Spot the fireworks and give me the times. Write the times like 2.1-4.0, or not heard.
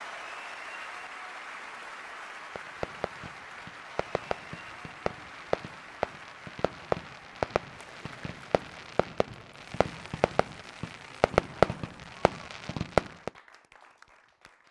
2.5-13.3.